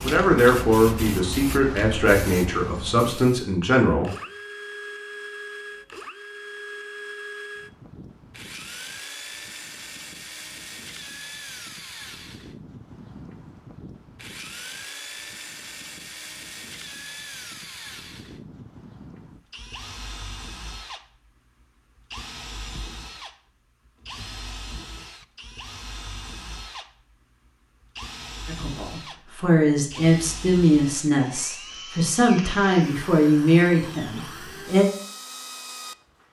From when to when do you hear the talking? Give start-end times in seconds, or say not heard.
0.0-4.1, 28.4-34.9.